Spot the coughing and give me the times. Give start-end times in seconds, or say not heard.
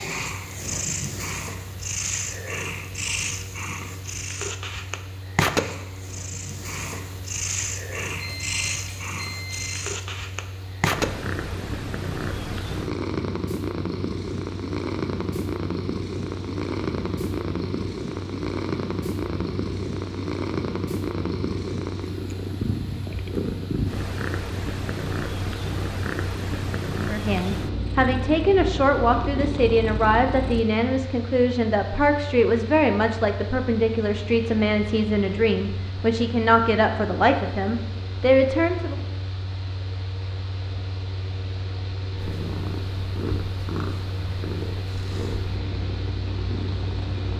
not heard.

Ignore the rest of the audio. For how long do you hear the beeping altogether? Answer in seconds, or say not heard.
2 s.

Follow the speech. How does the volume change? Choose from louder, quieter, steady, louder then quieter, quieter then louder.
steady.